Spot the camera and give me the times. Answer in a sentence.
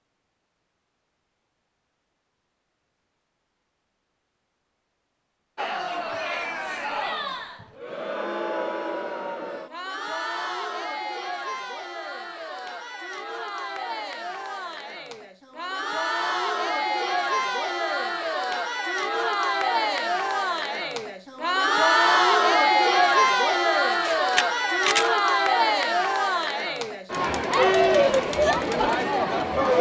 The camera can be heard from 23.9 to 25.1 s.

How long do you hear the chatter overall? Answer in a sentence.
The chatter can be heard for 24 seconds in total.